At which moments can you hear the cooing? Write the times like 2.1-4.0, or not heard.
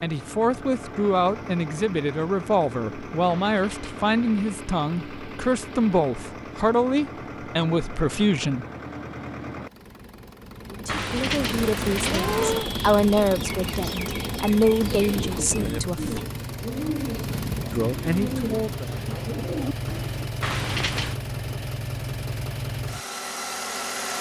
12.3-20.3.